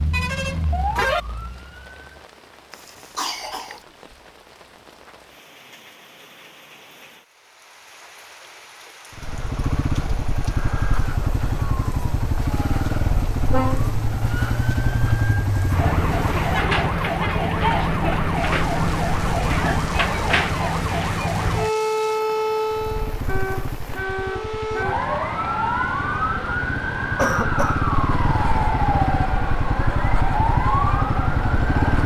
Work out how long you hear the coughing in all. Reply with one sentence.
You can hear the coughing for 2 seconds altogether.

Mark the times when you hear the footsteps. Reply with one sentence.
The footsteps can't be heard in this clip.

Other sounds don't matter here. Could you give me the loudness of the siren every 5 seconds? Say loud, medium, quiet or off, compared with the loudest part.
medium, off, medium, loud, loud, loud, loud.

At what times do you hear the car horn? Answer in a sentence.
The car horn can be heard from 0.1 to 1.2 s, from 13.5 to 14.2 s and from 23.2 to 24.9 s.